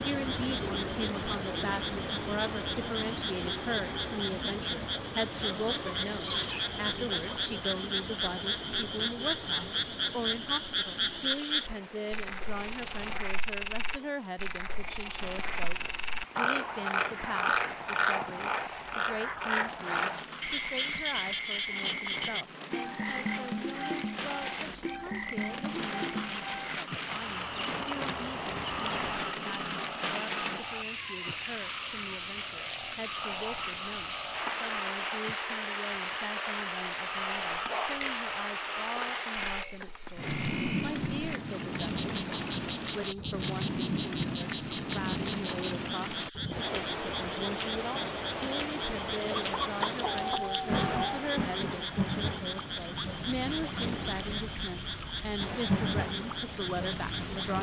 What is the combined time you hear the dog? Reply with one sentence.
You can't hear the dog here.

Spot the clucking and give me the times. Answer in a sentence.
You can hear the clucking from 5.4 to 7.4 s, from 27.1 to 29.3 s and from 49.2 to 51.9 s.